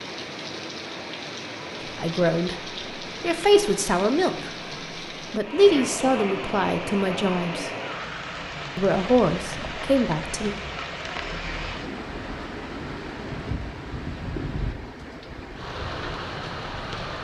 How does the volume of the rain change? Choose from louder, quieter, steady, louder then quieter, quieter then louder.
steady.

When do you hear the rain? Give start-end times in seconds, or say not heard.
0.0-17.2.